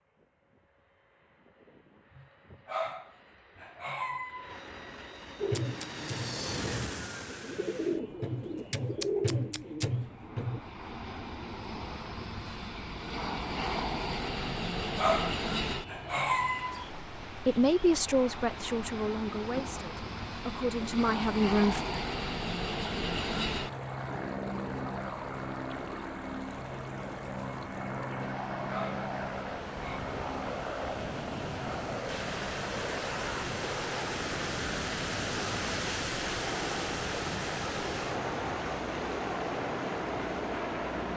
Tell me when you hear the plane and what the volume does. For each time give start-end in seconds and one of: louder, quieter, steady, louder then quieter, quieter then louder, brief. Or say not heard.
0.0-41.1 louder.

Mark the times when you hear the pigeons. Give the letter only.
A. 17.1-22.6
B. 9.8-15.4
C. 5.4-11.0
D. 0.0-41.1
C.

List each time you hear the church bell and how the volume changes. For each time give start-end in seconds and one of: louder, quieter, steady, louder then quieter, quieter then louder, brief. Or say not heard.
not heard.